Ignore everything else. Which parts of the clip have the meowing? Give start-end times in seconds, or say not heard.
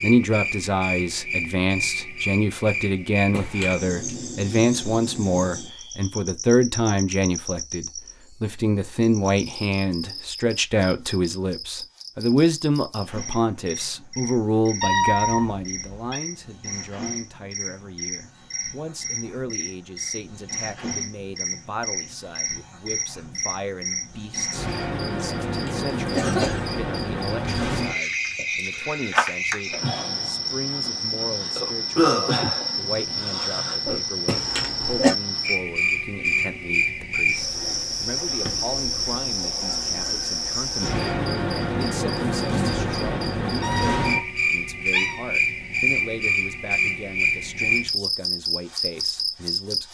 14.8-16.2, 43.6-45.2.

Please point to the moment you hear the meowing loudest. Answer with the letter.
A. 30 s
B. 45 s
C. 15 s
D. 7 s
C.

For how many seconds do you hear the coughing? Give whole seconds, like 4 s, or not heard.
3 s.